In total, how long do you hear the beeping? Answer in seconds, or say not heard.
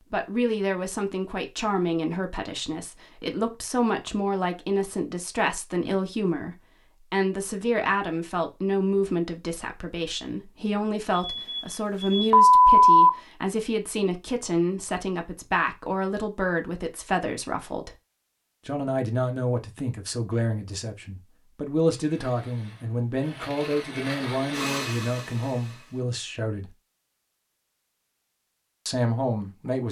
2 s.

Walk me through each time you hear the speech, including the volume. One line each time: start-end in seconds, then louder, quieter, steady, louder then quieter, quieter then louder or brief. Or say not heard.
0.1-17.9 steady
18.6-26.7 steady
28.9-29.8 brief.